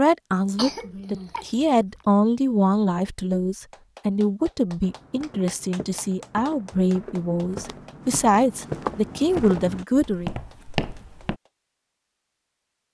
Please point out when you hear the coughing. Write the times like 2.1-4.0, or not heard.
0.6-2.0.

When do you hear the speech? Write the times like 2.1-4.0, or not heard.
0.0-10.3.